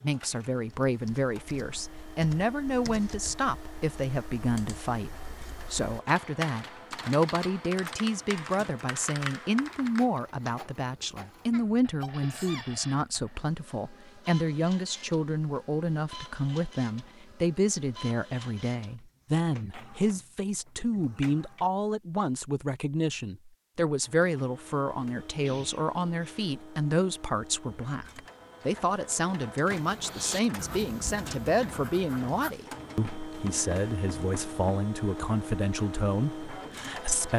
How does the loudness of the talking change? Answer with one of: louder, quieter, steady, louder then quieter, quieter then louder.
steady.